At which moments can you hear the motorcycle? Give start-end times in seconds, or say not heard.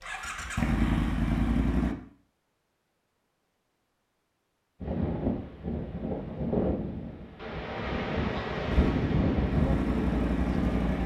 0.0-1.9, 8.7-11.0.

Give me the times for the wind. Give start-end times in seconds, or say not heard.
4.8-11.0.